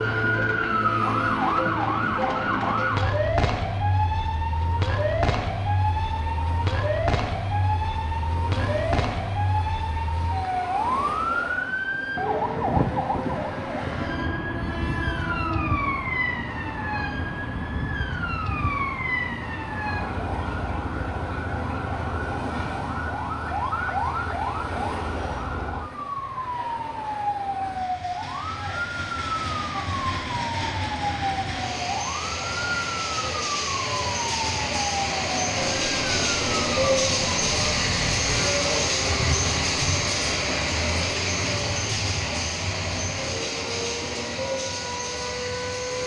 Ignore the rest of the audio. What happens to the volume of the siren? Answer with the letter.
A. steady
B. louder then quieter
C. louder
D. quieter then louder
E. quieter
E.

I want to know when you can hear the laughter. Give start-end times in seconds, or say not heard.
not heard.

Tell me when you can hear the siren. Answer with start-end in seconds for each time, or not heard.
0.0-46.0.